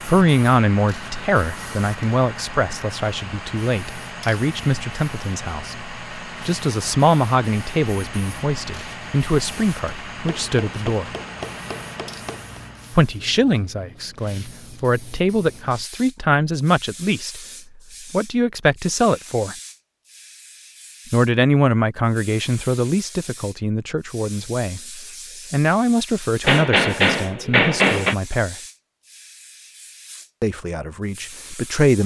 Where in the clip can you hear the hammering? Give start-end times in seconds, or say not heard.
10.2-12.6, 26.4-28.1.